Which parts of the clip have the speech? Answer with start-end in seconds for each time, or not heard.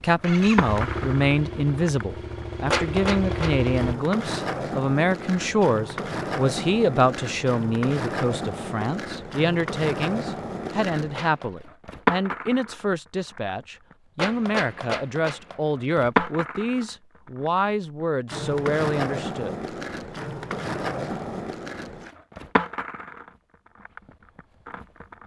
0.0-19.6.